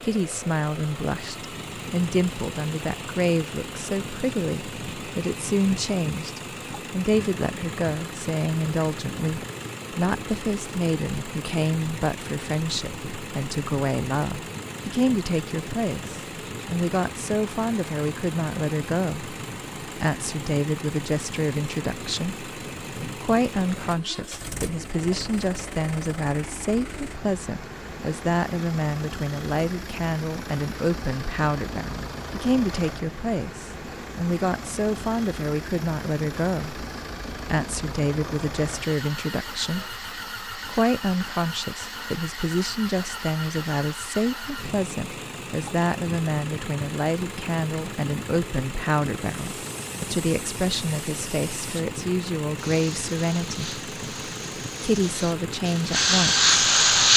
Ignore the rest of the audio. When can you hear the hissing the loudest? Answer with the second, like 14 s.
57 s.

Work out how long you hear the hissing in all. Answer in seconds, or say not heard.
8 s.